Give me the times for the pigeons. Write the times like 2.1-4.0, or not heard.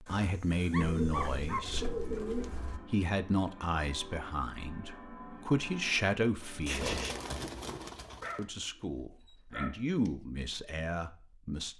0.8-2.8, 6.7-8.4.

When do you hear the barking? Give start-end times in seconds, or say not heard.
0.1-1.6, 8.2-10.1.